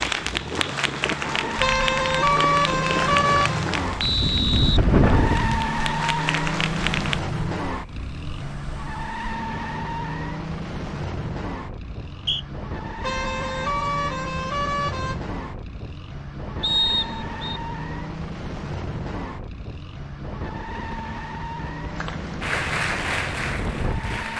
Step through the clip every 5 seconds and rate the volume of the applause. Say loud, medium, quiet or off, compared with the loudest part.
loud, loud, off, off, loud.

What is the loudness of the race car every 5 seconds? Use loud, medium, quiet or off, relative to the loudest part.
loud, loud, medium, medium, medium.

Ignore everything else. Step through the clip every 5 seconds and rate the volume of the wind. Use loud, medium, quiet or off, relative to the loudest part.
loud, loud, medium, medium, medium.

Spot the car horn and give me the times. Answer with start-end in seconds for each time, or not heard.
1.6-3.6, 13.0-15.3.